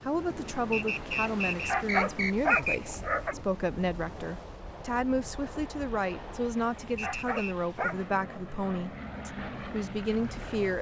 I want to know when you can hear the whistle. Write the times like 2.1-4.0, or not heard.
0.7-2.8, 7.0-7.5.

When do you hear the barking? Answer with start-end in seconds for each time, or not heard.
1.4-3.4, 6.5-8.0.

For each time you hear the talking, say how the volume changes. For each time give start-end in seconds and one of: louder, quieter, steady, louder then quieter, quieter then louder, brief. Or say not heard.
0.0-10.7 steady.